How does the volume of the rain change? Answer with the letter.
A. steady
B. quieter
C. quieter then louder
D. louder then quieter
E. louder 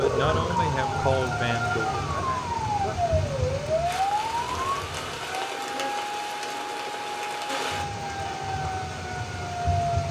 A.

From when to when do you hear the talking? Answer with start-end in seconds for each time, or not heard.
0.0-3.1.